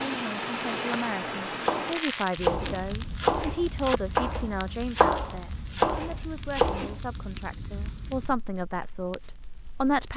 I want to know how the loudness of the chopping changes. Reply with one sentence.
The loudness of the chopping stays about the same.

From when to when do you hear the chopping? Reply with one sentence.
The chopping can be heard from 1.5 to 7.0 s.